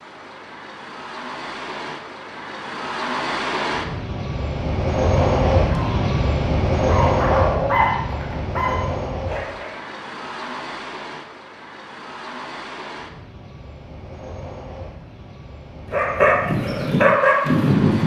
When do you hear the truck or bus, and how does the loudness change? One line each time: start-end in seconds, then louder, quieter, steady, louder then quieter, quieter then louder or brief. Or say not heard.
0.0-18.0 louder then quieter.